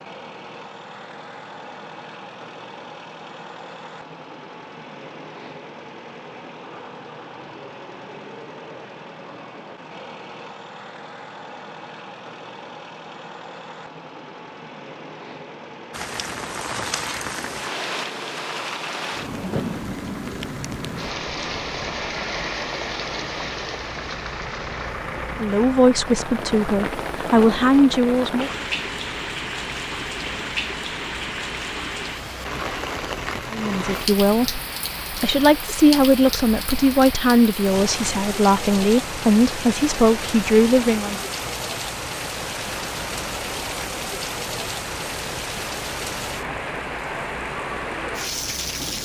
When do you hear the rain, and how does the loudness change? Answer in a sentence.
The rain can be heard from 15.9 to 49.0 s, at a steady volume.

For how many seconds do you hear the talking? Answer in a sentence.
The talking can be heard for 10 seconds in total.